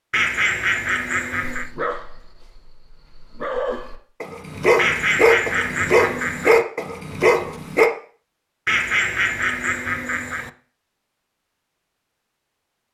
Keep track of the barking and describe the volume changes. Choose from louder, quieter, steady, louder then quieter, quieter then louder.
louder.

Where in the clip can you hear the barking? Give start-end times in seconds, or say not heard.
1.4-7.9.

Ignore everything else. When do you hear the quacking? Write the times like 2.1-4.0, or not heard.
0.1-1.7, 4.8-6.7, 8.7-10.5.